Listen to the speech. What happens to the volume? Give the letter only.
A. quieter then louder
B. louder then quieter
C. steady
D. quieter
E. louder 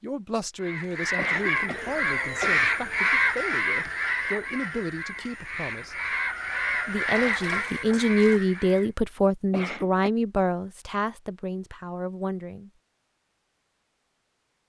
B.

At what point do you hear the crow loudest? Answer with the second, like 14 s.
3 s.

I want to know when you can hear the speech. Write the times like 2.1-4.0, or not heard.
0.0-6.0, 6.8-12.7.